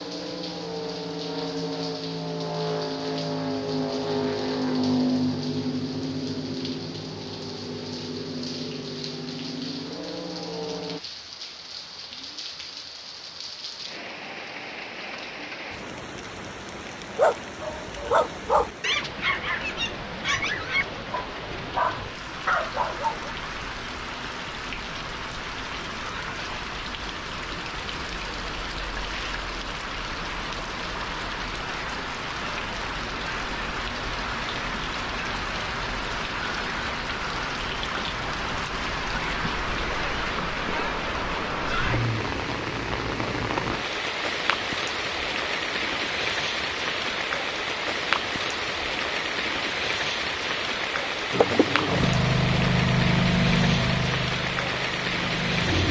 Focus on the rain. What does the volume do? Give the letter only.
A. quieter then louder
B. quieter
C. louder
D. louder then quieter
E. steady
C.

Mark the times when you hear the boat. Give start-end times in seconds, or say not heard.
0.0-11.0, 51.3-55.8.